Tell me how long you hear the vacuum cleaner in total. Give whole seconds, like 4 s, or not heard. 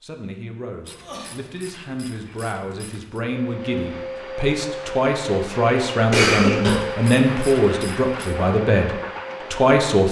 7 s.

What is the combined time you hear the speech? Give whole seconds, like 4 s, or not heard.
10 s.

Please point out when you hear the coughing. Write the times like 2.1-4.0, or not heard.
0.9-1.4, 6.1-6.8.